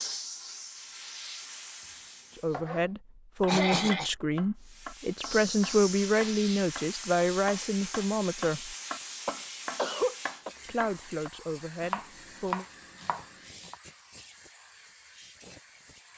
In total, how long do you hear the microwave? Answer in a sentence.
The microwave can't be heard in this clip.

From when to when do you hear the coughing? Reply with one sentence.
You can hear the coughing from 3.5 to 4.1 s and from 9.2 to 10.5 s.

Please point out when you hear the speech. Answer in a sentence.
You can hear the speech from 2.4 to 8.8 s and from 10.7 to 12.7 s.